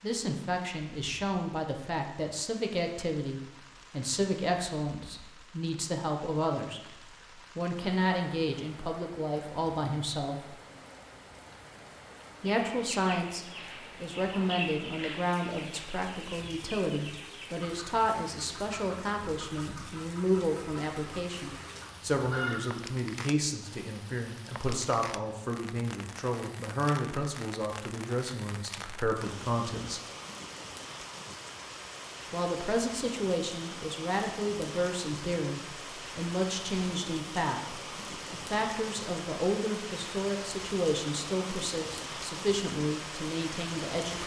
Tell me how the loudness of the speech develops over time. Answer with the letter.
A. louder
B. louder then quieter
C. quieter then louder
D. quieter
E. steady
E.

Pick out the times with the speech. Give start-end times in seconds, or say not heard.
0.0-6.8, 7.5-10.6, 12.4-30.0, 32.3-44.2.